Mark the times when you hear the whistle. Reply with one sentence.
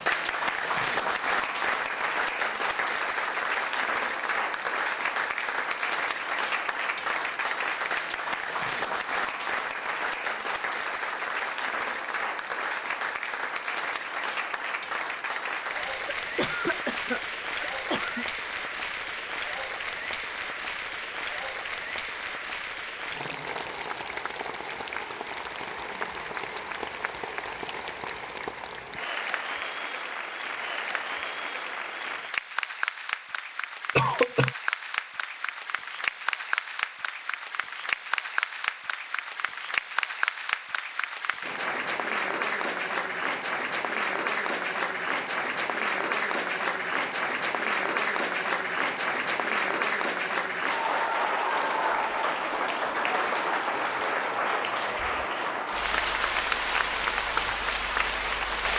The whistle can't be heard in this clip.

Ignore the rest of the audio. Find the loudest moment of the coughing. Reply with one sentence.
The loudest moment of the coughing is at 34 seconds.